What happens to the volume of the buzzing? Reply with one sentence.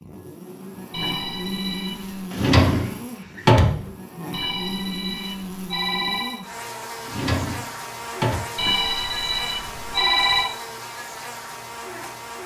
The volume of the buzzing stays about the same.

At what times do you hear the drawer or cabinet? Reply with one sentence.
You can hear the drawer or cabinet from 2.3 to 3.8 s and from 7.0 to 8.4 s.